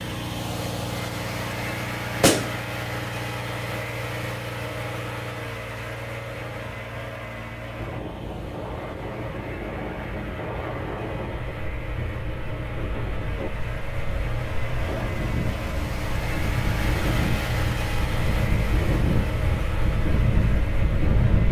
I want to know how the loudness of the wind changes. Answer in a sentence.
The volume of the wind goes up.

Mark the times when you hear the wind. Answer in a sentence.
You can hear the wind from 7.8 to 21.4 s.